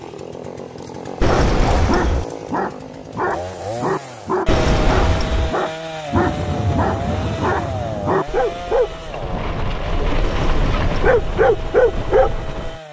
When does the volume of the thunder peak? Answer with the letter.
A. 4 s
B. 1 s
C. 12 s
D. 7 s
D.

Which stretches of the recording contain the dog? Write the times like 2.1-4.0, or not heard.
1.2-12.8.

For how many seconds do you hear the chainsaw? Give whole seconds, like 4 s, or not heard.
13 s.